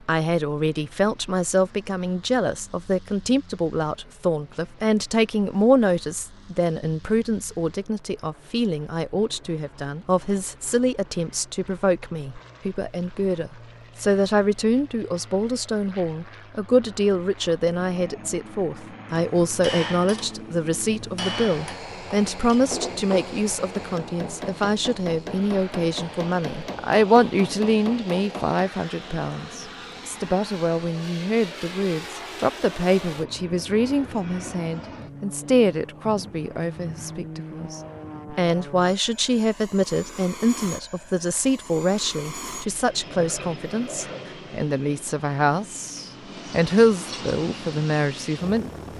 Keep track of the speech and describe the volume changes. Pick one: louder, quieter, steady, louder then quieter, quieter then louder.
steady.